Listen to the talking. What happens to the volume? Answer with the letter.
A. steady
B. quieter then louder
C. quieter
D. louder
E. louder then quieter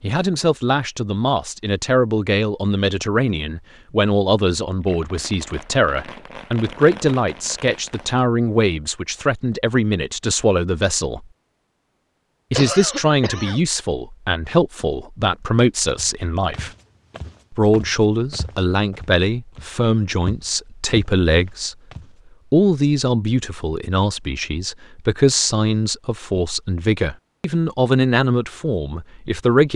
A.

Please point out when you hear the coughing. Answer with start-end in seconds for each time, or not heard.
12.6-13.6.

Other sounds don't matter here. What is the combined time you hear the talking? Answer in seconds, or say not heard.
27 s.